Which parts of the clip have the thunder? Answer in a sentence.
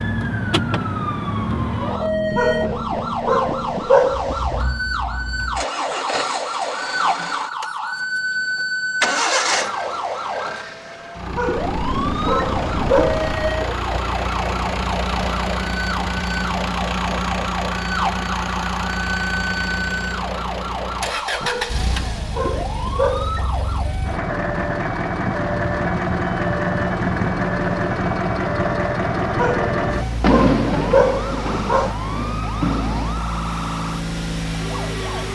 You can hear the thunder from 11.5 to 13.6 s and from 30.2 to 33.1 s.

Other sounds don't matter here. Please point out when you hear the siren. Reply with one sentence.
You can hear the siren from 0.0 to 35.3 s.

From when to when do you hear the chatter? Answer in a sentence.
The chatter can't be heard in this clip.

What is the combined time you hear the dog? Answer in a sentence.
The dog can be heard for 9 seconds in total.